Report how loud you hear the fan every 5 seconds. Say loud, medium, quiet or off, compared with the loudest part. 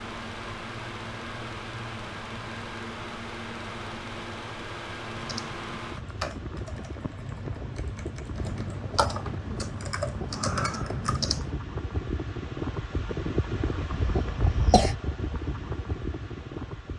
loud, medium, loud, loud.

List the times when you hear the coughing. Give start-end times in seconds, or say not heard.
13.9-14.9.